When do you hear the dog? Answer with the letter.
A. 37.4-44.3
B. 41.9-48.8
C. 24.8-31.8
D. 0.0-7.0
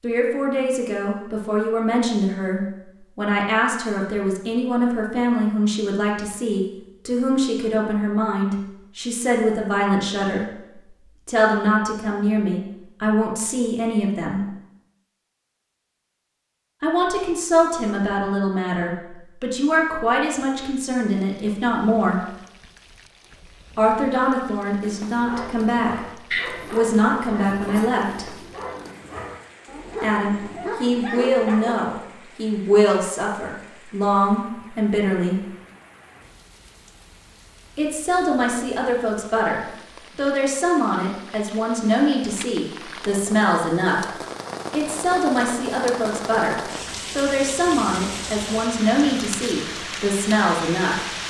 C.